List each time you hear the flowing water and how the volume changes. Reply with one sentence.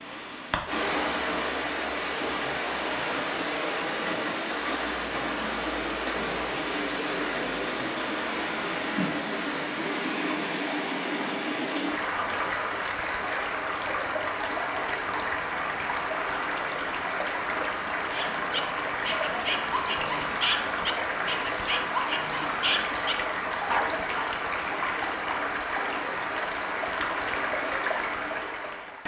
The flowing water can be heard from 0.0 to 29.0 s, at a steady volume.